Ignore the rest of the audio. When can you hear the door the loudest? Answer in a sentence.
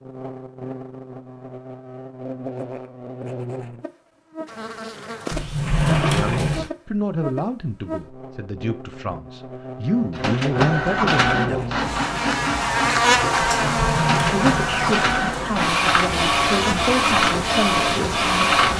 The volume of the door peaks at 6 seconds.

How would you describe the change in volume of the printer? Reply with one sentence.
The volume of the printer goes down, then up.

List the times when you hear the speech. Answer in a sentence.
You can hear the speech from 6.0 to 11.8 s and from 14.3 to 18.6 s.